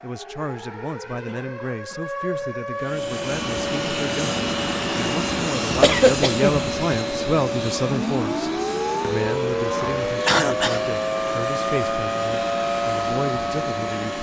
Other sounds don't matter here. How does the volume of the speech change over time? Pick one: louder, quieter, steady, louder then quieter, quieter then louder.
louder then quieter.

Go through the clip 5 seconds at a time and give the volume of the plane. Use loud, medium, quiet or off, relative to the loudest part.
loud, loud, medium.